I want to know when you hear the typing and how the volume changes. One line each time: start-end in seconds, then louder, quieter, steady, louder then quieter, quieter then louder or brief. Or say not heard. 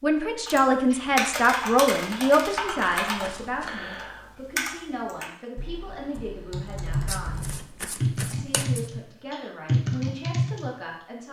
0.5-10.7 quieter then louder.